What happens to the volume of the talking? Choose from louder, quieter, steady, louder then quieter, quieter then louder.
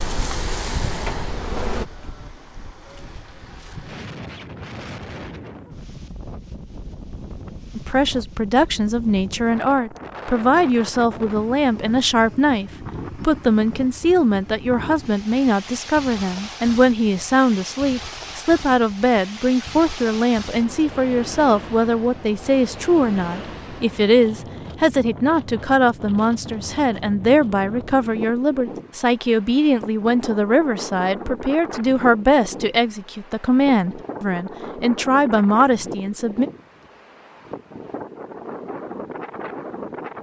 steady.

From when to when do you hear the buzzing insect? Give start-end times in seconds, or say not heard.
0.0-1.9.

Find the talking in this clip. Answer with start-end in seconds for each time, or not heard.
7.8-36.5.